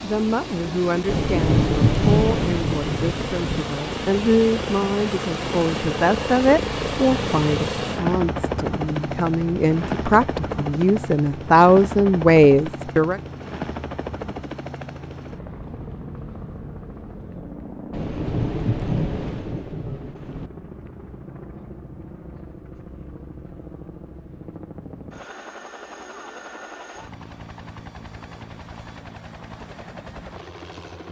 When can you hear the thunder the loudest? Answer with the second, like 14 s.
2 s.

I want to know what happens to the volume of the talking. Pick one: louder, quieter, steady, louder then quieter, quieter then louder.
louder.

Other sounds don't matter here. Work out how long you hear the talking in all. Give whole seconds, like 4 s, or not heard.
13 s.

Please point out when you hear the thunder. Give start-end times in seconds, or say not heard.
1.1-3.6, 17.9-20.5.